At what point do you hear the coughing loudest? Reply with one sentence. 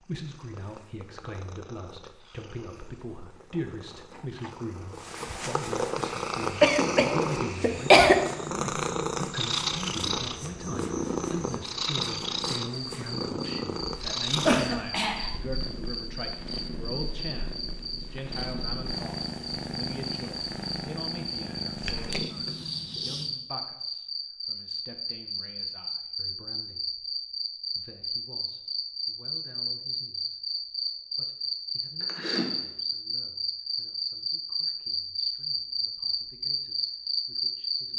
The loudest moment of the coughing is at 8 seconds.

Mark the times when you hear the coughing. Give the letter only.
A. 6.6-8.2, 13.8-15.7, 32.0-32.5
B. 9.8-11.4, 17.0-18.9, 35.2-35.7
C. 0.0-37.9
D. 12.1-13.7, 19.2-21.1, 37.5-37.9
A.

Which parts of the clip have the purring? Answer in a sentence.
The purring can be heard from 0.0 to 23.4 s.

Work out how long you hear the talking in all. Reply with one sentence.
You can hear the talking for 38 seconds altogether.